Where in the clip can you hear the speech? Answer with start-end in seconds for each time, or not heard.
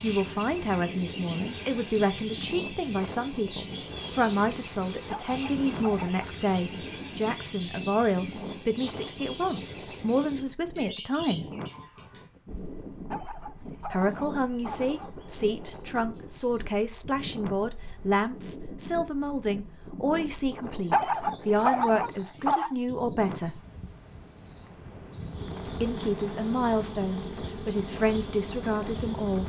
0.0-11.4, 13.8-23.6, 25.6-29.4.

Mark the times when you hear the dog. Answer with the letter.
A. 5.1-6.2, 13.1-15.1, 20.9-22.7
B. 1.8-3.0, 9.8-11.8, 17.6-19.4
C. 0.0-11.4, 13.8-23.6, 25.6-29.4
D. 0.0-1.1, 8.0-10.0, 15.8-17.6
A.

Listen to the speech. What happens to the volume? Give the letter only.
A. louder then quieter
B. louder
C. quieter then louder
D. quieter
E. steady
E.